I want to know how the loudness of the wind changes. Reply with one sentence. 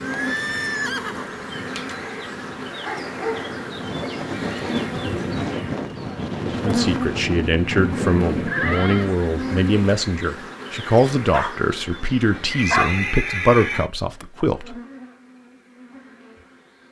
The volume of the wind goes up.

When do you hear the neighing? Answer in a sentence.
The neighing can be heard from 0.0 to 1.4 s, from 8.4 to 9.1 s and from 12.4 to 13.9 s.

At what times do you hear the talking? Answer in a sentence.
The talking can be heard from 6.6 to 14.8 s.